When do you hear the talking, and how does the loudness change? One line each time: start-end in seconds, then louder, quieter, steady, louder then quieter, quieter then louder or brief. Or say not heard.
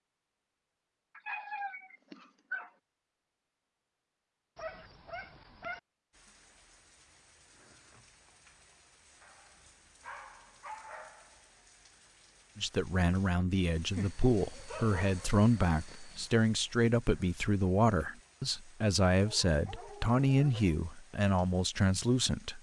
12.6-22.5 steady.